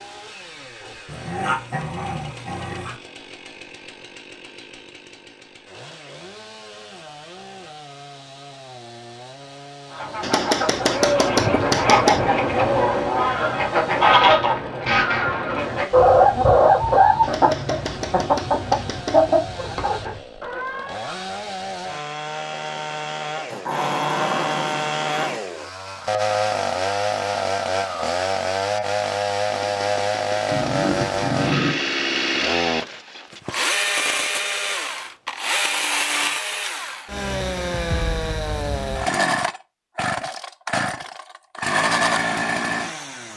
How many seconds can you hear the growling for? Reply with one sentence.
The growling can be heard for 5 seconds in total.